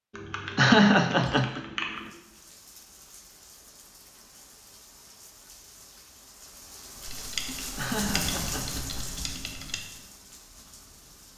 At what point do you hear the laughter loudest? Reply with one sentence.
The loudest moment of the laughter is at 1 second.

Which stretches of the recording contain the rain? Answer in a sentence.
The rain can be heard from 1.9 to 11.3 s.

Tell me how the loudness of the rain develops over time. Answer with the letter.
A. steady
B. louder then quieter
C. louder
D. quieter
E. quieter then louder
B.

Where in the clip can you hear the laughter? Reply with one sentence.
You can hear the laughter from 0.6 to 1.6 s and from 7.8 to 9.1 s.